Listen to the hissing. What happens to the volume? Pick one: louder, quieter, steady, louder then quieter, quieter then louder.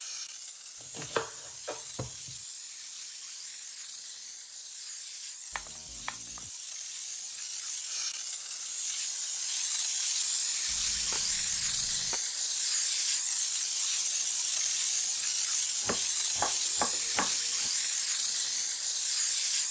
louder.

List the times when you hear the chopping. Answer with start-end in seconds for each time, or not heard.
0.8-2.4, 5.5-6.5, 10.7-12.2, 15.8-17.7.